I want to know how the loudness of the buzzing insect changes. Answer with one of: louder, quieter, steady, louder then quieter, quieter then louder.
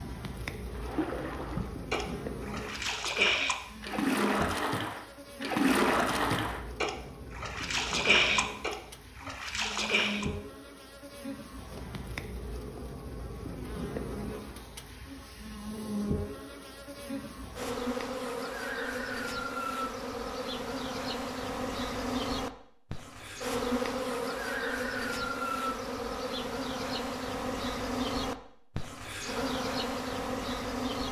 louder.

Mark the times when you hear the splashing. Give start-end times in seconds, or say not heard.
0.7-10.2.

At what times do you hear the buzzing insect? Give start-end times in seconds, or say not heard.
0.0-31.0.